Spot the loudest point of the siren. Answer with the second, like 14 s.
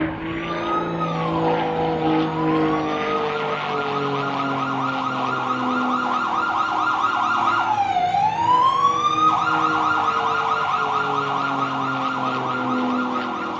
9 s.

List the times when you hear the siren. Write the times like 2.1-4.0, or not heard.
0.2-13.5.